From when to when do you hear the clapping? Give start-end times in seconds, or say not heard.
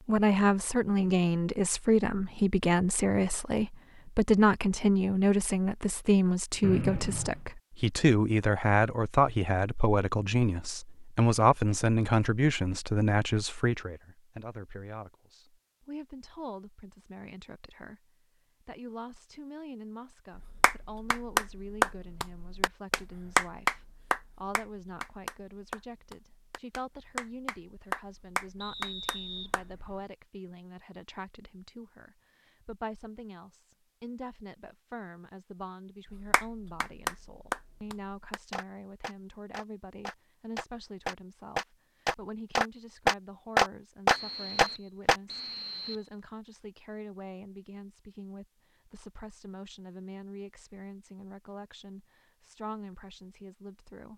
20.4-29.8, 36.1-45.1.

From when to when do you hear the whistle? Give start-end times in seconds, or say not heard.
6.6-7.4, 28.6-29.9, 44.0-46.1.